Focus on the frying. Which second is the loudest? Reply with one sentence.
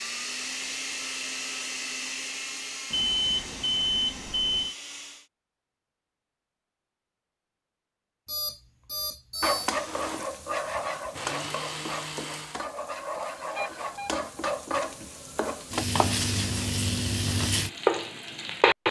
The loudest moment of the frying is at 18 seconds.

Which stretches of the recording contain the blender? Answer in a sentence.
You can hear the blender from 0.0 to 5.2 s and from 9.7 to 12.7 s.